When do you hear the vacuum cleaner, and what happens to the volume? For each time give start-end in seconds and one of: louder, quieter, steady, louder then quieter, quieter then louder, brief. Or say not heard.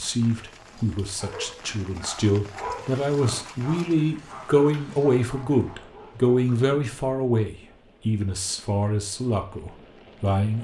not heard.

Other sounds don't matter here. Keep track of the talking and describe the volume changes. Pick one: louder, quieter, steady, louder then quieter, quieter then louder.
louder then quieter.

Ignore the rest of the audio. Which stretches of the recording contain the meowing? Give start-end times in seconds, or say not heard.
not heard.